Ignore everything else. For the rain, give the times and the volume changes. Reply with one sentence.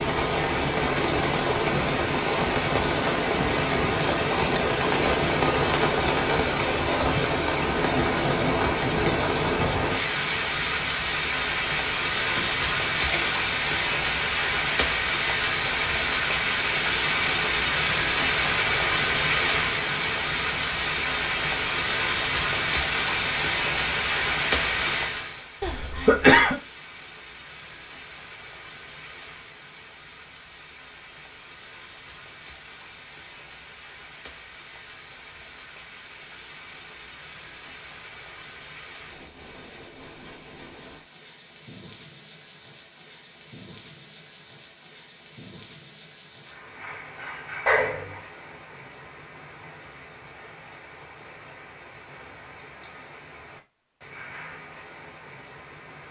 You can hear the rain from 0.0 to 56.0 s, getting quieter.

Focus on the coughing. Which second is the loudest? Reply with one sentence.
The loudest moment of the coughing is at 26 seconds.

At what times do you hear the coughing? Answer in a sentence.
The coughing can be heard from 12.3 to 13.4 s, from 25.6 to 26.6 s and from 47.6 to 48.2 s.